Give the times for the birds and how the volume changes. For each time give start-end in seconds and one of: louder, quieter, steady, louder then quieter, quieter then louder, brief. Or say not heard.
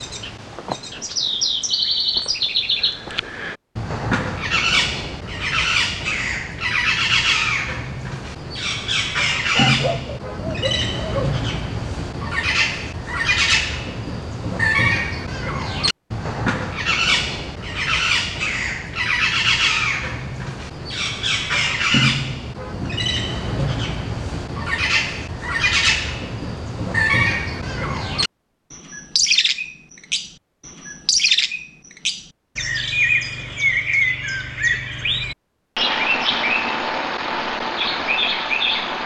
0.0-39.0 steady.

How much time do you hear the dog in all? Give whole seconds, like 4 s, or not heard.
2 s.